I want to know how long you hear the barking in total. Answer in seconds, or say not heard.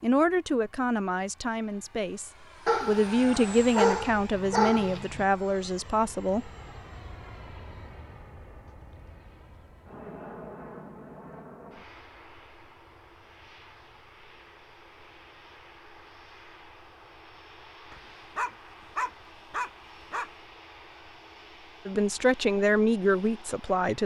5 s.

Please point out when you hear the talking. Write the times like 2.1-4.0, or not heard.
0.0-6.5, 21.9-24.0.